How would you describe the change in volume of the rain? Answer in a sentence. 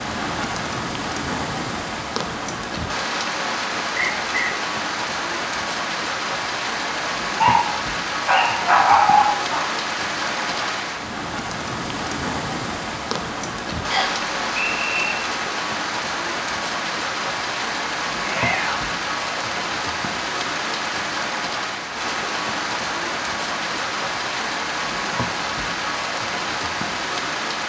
The volume of the rain stays about the same.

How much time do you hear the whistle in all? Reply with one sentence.
The whistle can be heard for 2 seconds in total.